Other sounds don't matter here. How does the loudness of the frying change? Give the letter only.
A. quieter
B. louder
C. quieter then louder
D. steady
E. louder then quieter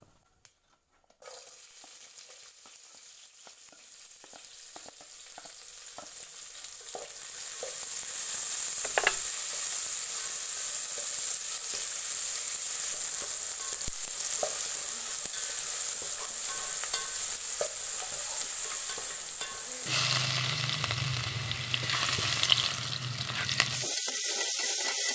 B.